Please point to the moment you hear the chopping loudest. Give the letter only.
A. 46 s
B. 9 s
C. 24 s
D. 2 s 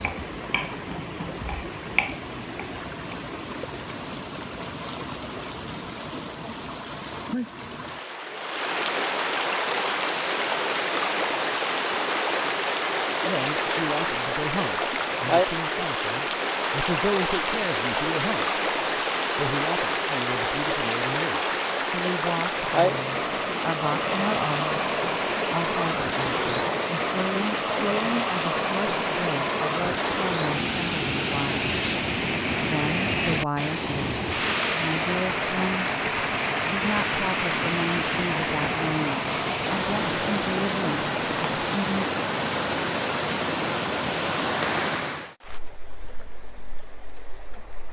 D.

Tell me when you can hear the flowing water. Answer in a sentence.
You can hear the flowing water from 0.0 to 47.8 s.